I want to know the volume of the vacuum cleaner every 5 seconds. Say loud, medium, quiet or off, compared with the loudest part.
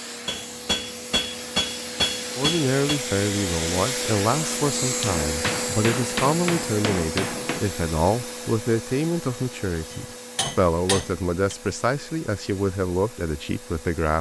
loud, loud, quiet.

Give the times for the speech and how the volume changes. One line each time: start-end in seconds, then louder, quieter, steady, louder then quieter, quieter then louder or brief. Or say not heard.
2.4-14.1 steady.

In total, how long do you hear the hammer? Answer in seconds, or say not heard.
7 s.